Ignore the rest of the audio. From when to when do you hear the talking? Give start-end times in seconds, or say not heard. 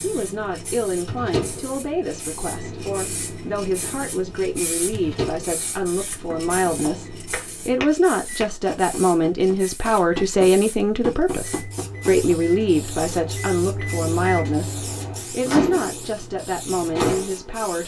0.0-17.8.